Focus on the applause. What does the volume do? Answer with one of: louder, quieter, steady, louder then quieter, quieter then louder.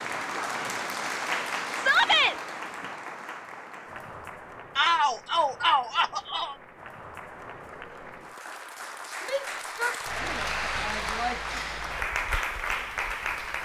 quieter then louder.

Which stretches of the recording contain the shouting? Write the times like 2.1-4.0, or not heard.
1.8-2.4, 4.8-6.5, 9.2-11.6.